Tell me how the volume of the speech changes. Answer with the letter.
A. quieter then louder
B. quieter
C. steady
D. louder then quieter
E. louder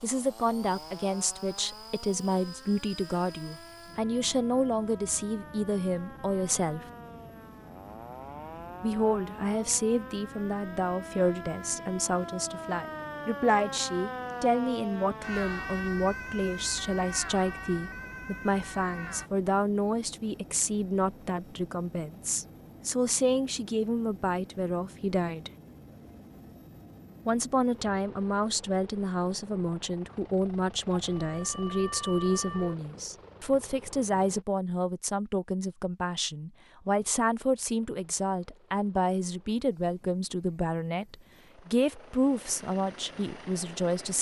C.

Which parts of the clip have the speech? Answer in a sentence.
You can hear the speech from 0.0 to 6.8 s, from 8.8 to 25.5 s and from 27.2 to 44.1 s.